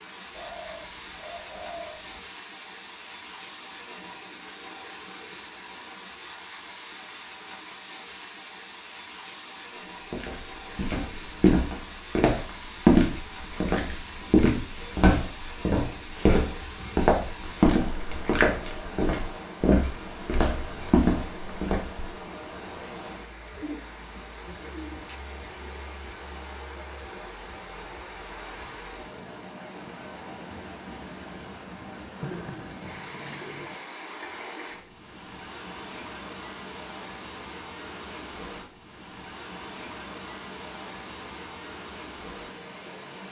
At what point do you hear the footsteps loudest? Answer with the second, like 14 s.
13 s.